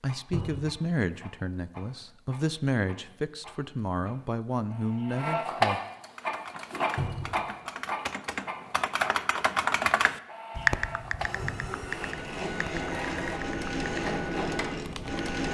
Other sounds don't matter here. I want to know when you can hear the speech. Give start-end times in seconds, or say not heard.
0.0-5.8.